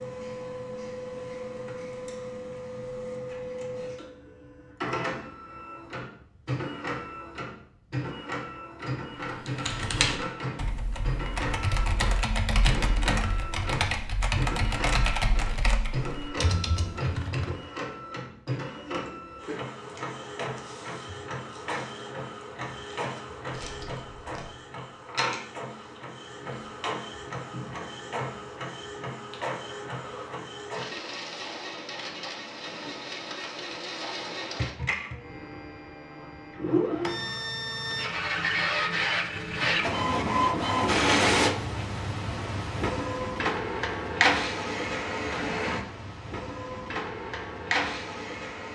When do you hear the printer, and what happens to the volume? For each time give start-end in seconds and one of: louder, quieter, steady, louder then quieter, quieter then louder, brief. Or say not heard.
0.0-48.7 louder.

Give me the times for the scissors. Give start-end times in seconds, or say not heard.
23.5-24.4.